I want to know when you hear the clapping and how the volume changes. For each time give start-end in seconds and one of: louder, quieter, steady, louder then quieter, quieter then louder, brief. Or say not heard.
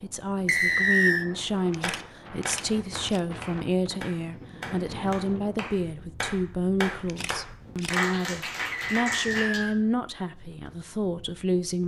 1.8-9.6 louder.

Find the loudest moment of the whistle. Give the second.
1 s.